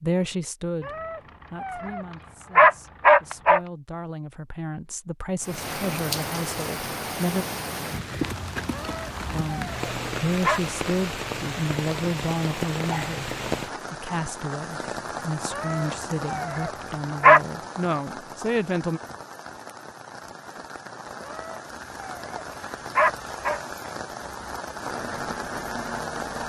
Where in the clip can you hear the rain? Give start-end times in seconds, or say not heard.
5.4-26.4.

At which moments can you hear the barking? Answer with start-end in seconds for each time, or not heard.
0.8-3.6, 8.7-10.6, 15.5-17.4, 21.2-23.6.